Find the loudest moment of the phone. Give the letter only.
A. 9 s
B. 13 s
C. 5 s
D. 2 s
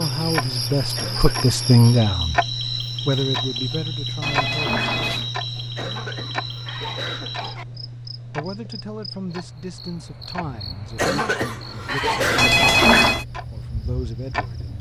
B.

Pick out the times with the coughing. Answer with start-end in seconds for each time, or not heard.
0.9-1.4, 5.8-7.7, 10.9-12.7.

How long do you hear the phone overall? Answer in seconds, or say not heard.
2 s.